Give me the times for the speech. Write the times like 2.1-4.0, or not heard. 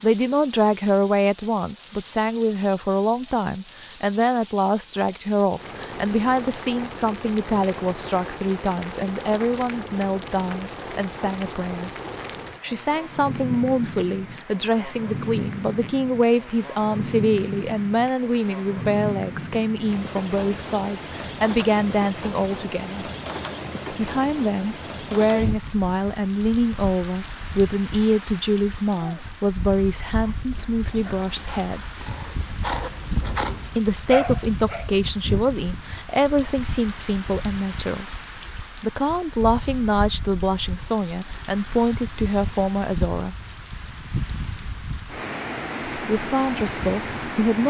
0.0-11.9, 12.6-23.1, 23.9-31.9, 33.8-38.1, 38.8-43.4, 46.1-47.6.